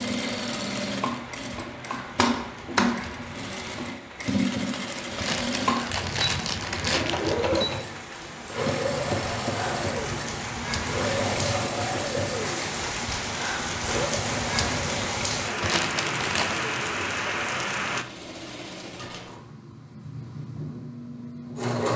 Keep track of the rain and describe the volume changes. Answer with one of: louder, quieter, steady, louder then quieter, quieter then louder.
louder.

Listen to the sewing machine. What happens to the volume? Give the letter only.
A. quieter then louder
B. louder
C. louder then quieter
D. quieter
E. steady
D.